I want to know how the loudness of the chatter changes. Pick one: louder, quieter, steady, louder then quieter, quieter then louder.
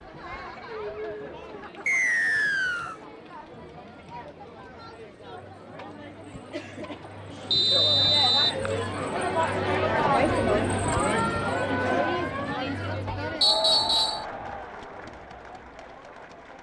louder then quieter.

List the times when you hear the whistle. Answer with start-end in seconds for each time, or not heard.
1.9-3.0, 7.5-8.6, 13.4-14.2.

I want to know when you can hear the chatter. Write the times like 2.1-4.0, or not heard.
0.0-16.5.